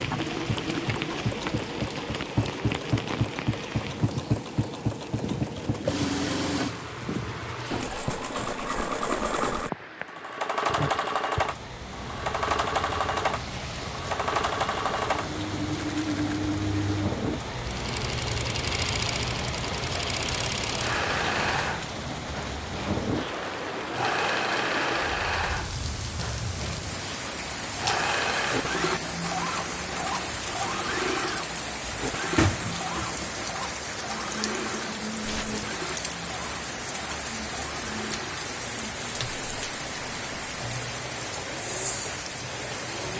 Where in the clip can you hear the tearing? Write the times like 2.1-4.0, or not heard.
13.3-14.0, 35.2-35.6.